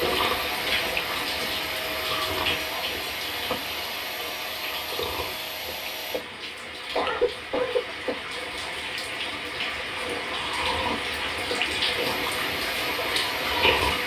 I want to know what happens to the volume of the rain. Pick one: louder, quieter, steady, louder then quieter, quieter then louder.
quieter then louder.